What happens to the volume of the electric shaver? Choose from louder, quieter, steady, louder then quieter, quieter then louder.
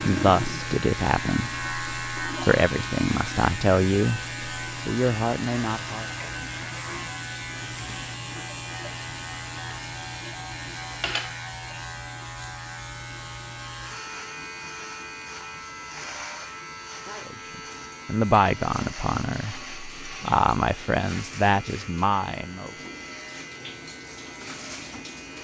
quieter.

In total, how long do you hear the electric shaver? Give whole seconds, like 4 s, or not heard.
25 s.